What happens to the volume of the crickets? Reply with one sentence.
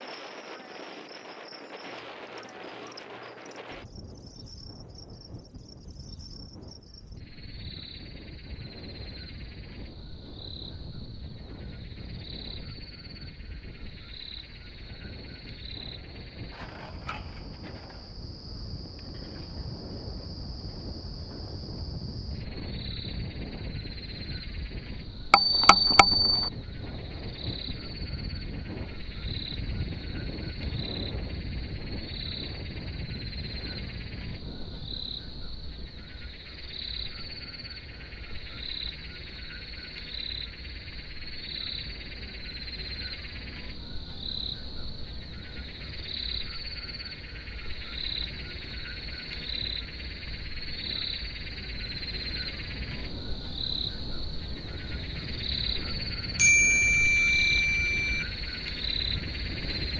The volume of the crickets goes up.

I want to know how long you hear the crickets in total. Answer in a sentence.
The crickets can be heard for 60 seconds in total.